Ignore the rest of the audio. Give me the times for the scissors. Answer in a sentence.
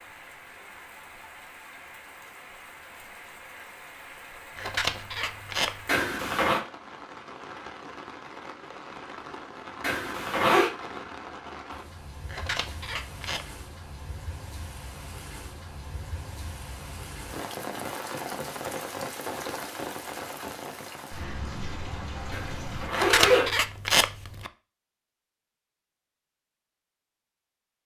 You can hear the scissors from 4.5 to 5.8 s, from 12.2 to 13.4 s and from 22.9 to 24.5 s.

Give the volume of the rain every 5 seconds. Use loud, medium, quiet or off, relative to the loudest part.
medium, medium, medium, loud, loud, off.